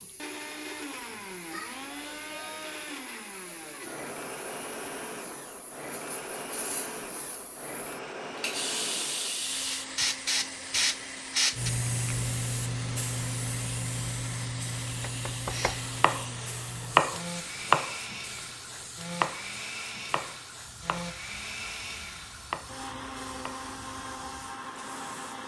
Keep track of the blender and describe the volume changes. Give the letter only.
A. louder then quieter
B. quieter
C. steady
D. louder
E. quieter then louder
C.